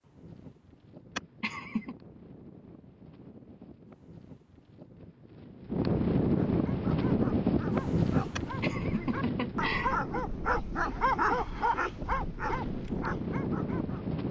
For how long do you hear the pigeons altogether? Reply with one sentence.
You can't hear the pigeons here.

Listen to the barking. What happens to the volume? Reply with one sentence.
The volume of the barking goes up, then down.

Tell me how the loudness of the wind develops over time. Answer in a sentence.
The volume of the wind goes up, then down.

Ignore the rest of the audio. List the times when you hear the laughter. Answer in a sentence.
You can hear the laughter from 1.1 to 1.9 s and from 8.3 to 10.0 s.